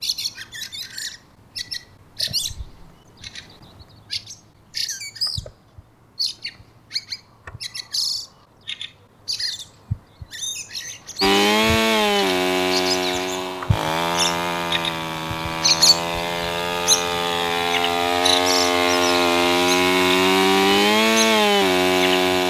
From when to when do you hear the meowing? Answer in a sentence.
The meowing can't be heard in this clip.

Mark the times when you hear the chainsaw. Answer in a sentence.
You can hear the chainsaw from 11.2 to 22.4 s.